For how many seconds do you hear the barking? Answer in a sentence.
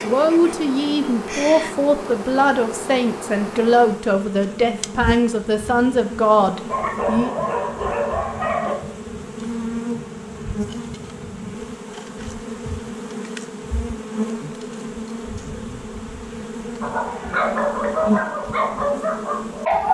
You can hear the barking for 5 seconds altogether.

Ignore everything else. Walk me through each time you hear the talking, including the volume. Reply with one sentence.
You can hear the talking from 0.0 to 7.3 s, at a steady volume.